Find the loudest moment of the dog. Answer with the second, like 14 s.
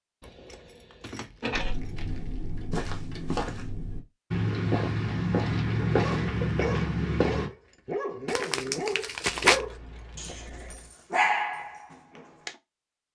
11 s.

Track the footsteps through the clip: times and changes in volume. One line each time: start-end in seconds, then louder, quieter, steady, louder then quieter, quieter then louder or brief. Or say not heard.
1.5-7.5 louder.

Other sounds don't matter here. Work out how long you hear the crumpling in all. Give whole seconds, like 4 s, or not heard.
3 s.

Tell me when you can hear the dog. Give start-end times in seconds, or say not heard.
5.8-12.6.